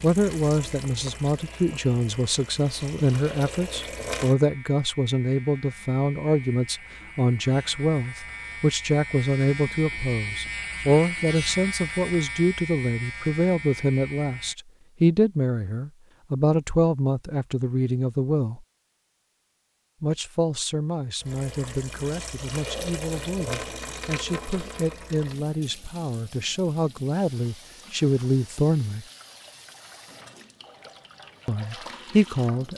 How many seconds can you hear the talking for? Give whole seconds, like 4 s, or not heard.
29 s.